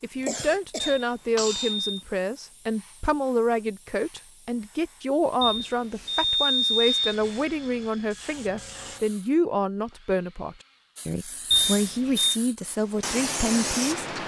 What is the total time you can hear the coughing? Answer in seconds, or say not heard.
2 s.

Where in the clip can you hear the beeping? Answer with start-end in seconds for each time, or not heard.
0.8-2.0, 5.4-7.2, 11.5-12.3.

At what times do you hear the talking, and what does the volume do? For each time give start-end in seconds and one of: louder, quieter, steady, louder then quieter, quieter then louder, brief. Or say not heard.
0.0-14.1 steady.